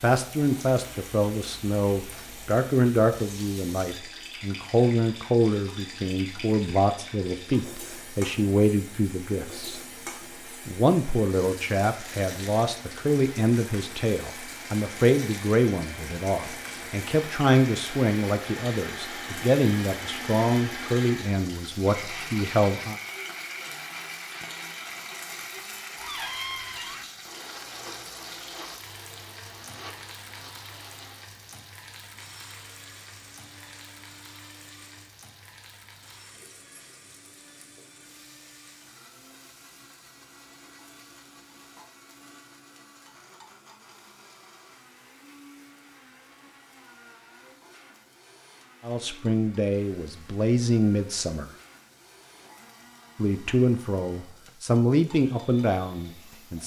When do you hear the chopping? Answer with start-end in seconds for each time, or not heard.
not heard.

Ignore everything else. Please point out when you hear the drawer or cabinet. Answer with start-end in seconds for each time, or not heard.
25.9-27.1.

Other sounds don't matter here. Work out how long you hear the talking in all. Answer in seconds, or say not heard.
28 s.